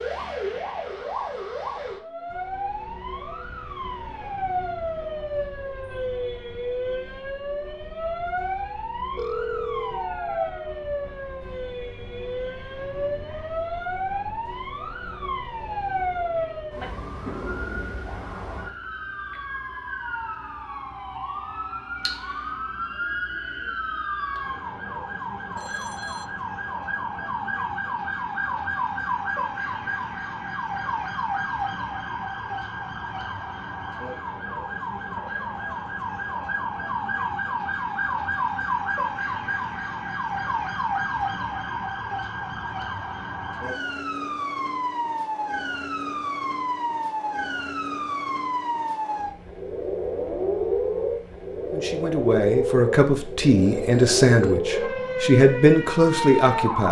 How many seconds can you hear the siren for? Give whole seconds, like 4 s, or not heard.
57 s.